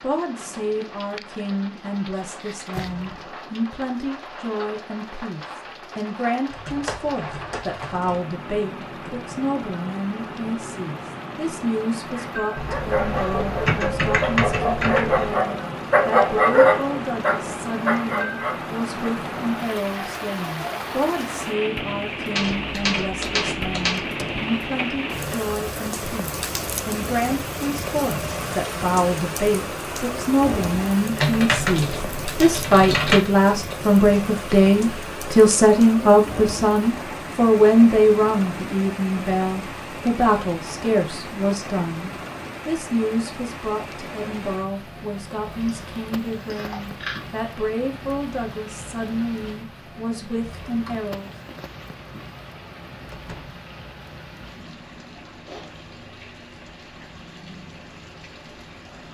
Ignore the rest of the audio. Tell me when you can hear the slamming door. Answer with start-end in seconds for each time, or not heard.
2.6-3.3, 24.0-24.5, 53.1-53.6.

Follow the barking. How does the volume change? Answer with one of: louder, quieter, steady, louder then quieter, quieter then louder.
louder then quieter.